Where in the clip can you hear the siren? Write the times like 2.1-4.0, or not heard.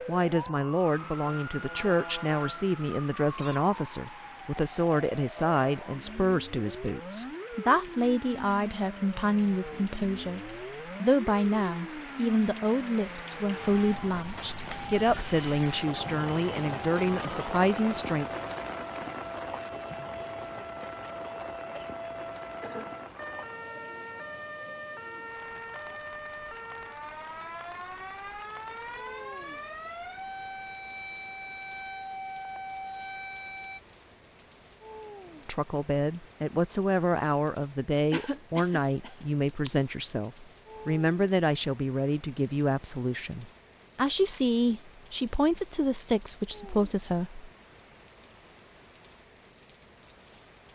0.0-33.8.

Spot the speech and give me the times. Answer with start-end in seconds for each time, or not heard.
0.1-18.2, 35.5-47.5.